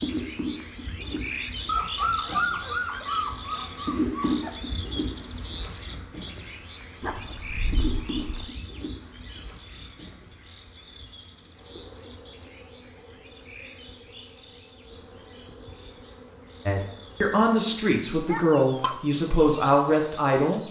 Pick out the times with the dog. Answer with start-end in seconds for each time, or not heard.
1.6-4.5, 7.0-8.4, 18.2-19.0.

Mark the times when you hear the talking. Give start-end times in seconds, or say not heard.
16.6-20.6.